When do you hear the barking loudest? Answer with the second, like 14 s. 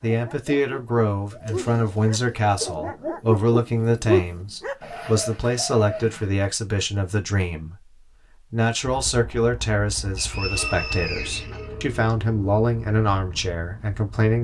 4 s.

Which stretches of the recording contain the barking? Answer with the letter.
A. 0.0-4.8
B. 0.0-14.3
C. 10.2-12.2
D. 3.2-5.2
A.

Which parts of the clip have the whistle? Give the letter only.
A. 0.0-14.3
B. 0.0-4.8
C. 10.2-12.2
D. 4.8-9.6
C.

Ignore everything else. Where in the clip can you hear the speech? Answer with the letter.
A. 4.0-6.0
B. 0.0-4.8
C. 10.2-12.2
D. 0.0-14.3
D.